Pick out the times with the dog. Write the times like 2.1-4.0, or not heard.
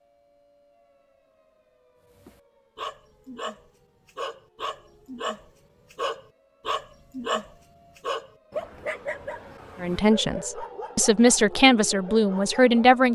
2.1-12.8.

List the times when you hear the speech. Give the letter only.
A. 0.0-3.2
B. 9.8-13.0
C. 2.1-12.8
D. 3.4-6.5
B.